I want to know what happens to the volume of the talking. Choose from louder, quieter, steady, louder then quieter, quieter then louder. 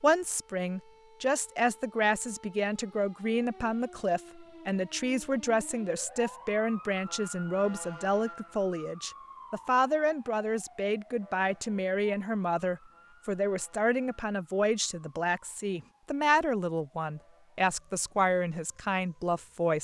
steady.